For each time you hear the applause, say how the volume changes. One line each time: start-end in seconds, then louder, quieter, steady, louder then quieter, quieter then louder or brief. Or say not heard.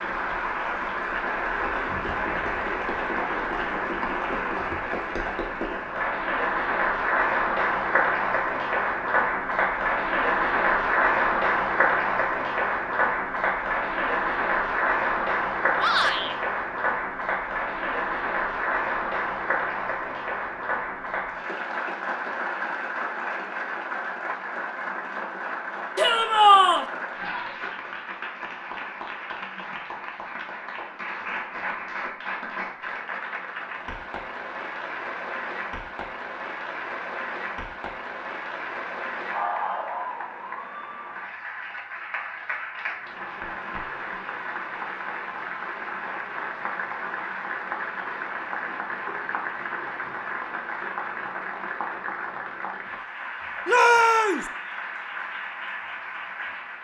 0.0-56.7 quieter.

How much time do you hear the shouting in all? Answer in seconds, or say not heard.
2 s.